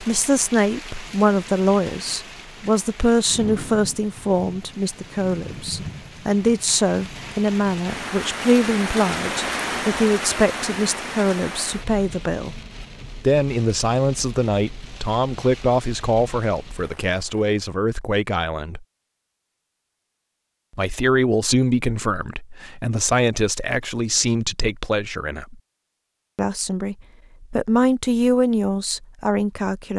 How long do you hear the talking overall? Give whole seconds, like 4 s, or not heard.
27 s.